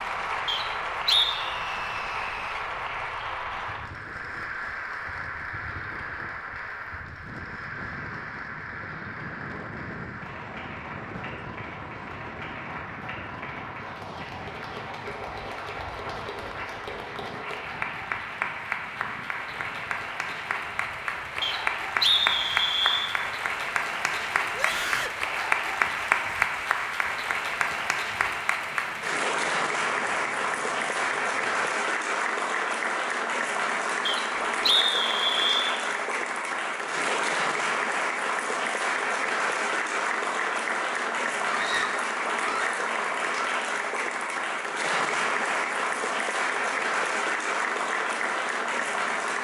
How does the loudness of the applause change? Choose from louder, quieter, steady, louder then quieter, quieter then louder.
louder.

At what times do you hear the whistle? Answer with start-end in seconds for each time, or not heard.
0.5-1.4, 21.4-23.1, 34.0-35.8.